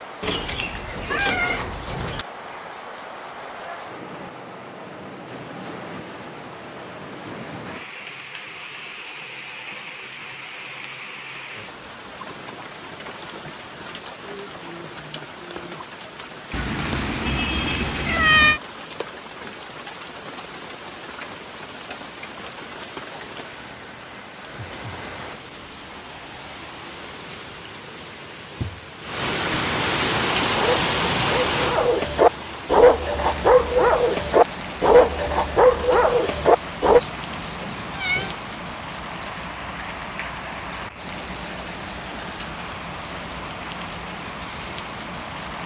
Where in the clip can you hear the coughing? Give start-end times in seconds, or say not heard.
not heard.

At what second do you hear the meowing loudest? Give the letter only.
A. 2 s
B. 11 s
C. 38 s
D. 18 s
D.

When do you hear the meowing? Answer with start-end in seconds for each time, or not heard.
0.2-2.2, 16.5-18.6, 37.0-38.4.